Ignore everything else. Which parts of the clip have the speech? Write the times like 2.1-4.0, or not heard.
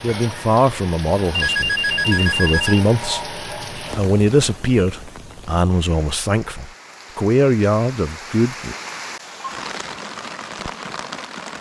0.0-8.8.